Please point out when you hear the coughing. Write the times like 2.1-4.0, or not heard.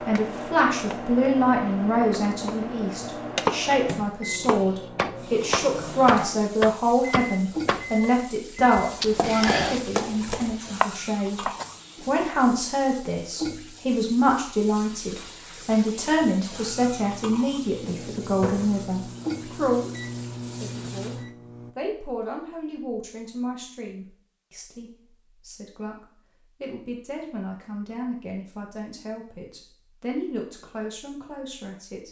9.0-9.8.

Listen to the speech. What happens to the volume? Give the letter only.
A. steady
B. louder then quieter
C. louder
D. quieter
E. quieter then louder
D.